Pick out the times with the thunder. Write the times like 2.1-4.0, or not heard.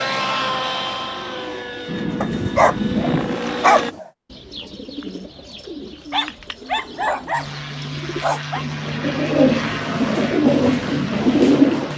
1.9-3.4.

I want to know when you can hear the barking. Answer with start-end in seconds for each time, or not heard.
2.2-4.0, 6.1-8.7.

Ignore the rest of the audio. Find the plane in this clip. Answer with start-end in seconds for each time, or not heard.
0.0-4.0, 7.3-11.9.